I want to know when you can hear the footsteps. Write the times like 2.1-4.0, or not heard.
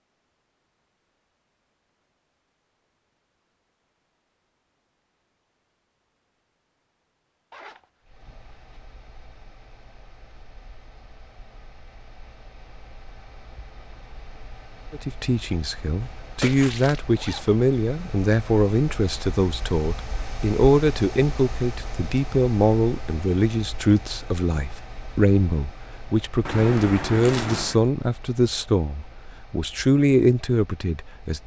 not heard.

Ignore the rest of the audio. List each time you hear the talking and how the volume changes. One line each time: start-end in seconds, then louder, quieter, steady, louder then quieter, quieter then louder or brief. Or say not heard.
14.9-31.4 steady.